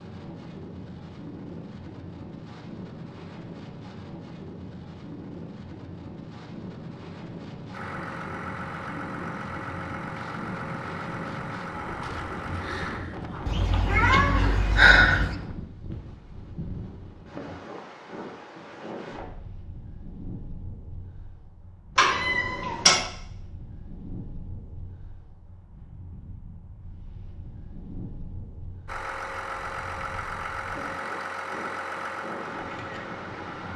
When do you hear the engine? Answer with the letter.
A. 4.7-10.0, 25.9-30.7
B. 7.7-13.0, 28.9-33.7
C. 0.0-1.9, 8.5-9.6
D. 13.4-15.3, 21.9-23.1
B.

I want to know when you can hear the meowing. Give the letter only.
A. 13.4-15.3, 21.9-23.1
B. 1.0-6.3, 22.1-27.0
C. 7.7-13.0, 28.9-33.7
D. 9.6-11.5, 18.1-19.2
A.